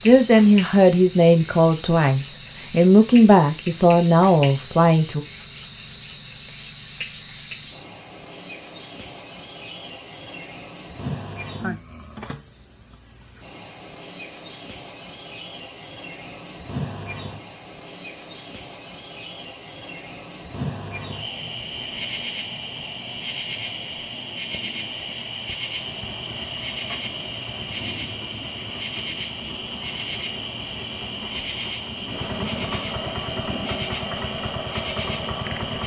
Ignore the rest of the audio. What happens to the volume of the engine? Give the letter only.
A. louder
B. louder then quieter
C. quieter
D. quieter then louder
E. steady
A.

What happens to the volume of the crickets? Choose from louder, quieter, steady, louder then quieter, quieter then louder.
steady.